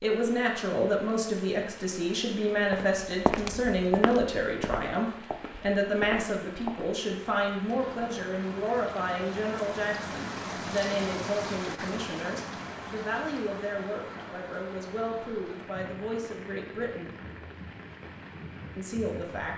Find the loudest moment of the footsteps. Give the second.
3 s.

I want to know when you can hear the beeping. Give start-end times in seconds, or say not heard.
not heard.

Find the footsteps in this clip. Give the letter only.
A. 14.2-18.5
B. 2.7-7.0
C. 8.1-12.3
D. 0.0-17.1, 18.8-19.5
B.